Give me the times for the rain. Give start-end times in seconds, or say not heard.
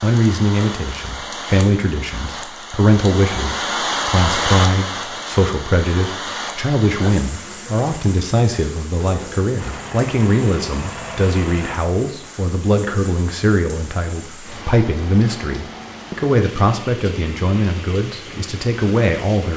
0.0-19.5.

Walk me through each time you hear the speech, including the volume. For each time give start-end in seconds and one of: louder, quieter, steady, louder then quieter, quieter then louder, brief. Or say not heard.
0.0-19.5 steady.